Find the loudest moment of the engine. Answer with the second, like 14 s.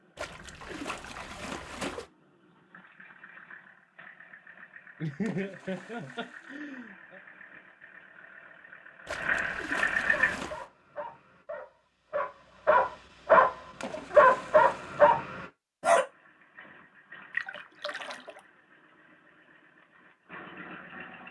10 s.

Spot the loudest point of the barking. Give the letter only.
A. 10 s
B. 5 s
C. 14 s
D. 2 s
C.